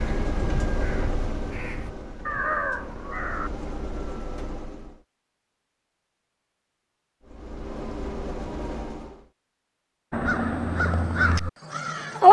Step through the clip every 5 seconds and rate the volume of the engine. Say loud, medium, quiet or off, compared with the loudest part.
loud, loud, off.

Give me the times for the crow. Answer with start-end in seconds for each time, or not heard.
0.0-3.5, 10.1-12.2.